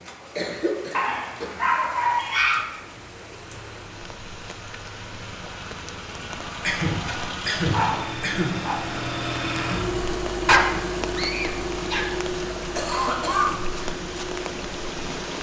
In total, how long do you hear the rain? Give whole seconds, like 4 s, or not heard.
15 s.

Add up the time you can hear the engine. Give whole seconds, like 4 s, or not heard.
15 s.